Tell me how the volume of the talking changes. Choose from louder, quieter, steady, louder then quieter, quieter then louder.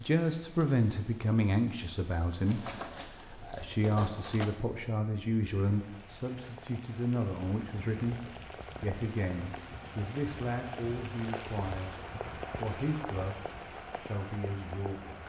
quieter.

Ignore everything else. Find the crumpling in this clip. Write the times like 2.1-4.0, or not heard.
2.5-4.5.